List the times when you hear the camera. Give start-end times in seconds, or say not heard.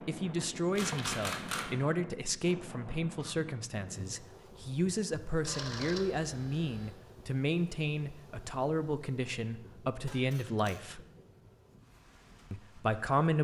0.8-1.8, 5.5-7.0, 10.1-10.8.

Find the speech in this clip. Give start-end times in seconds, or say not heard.
0.1-11.0, 12.5-13.3.